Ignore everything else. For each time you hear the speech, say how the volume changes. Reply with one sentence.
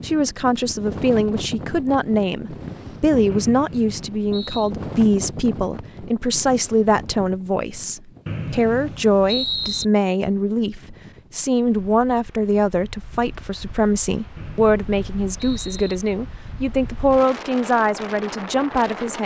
The speech can be heard from 0.0 to 19.2 s, at a steady volume.